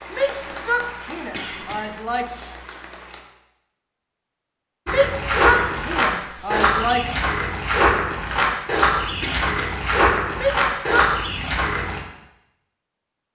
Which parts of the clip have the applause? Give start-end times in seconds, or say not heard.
0.0-3.2.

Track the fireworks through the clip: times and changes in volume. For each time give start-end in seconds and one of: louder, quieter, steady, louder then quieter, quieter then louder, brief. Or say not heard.
not heard.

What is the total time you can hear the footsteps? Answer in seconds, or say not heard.
7 s.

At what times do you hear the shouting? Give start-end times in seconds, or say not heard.
0.1-2.3, 4.8-7.2, 10.3-11.2.